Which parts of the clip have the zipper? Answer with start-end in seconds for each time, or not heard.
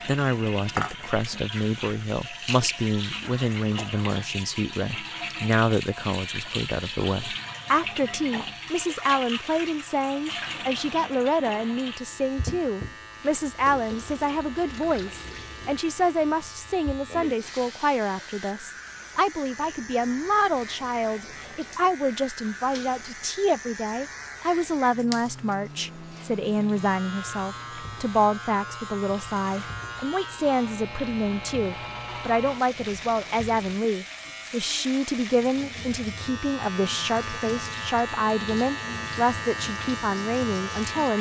not heard.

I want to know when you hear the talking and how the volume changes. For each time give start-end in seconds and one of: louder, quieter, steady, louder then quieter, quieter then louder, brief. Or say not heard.
0.1-41.1 steady.